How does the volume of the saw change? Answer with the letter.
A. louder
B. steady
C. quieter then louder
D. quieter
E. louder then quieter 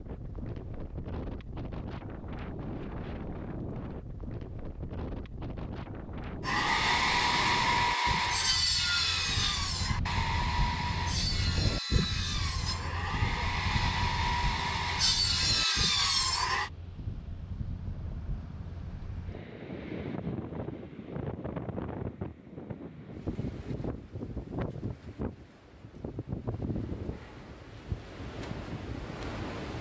C.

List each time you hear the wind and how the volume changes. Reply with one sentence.
The wind can be heard from 0.0 to 29.7 s, at a steady volume.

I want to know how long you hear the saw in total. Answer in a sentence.
You can hear the saw for 10 seconds altogether.